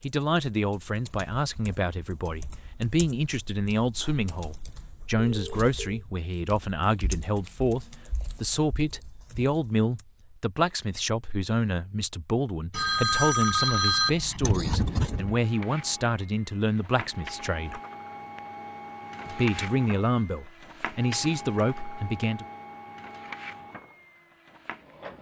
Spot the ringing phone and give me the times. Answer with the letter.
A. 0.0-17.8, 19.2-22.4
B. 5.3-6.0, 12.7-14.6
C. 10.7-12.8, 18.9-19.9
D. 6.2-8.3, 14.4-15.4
B.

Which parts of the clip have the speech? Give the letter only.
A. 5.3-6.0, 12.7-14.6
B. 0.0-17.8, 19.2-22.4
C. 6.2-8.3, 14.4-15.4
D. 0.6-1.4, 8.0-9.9
B.